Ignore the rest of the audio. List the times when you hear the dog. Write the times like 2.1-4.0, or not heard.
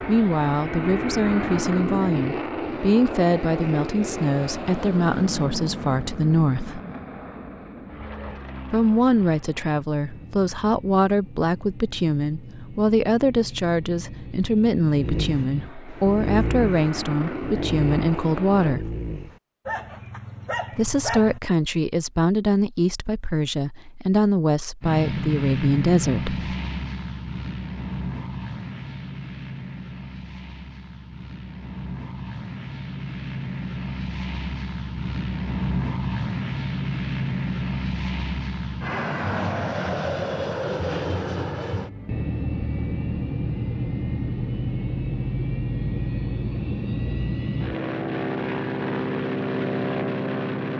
14.9-21.6.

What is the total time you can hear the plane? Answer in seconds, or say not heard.
45 s.